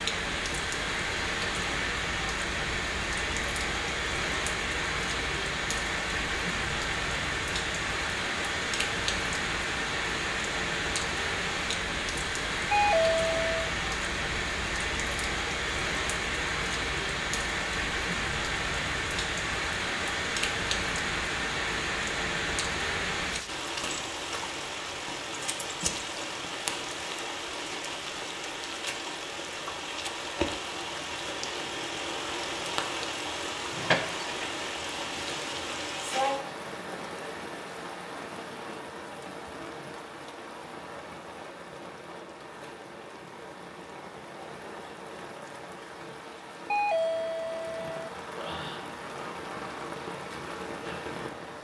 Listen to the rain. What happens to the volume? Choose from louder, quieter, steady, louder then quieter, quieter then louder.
quieter.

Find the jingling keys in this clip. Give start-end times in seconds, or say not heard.
33.7-34.5.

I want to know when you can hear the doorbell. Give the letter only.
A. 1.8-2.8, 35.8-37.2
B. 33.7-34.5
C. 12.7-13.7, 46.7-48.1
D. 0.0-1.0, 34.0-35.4
C.